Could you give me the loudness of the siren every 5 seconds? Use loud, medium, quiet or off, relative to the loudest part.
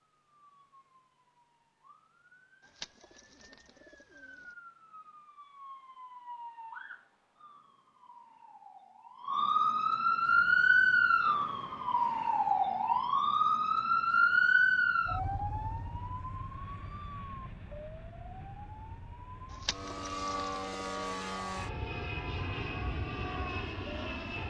quiet, medium, loud, quiet, quiet.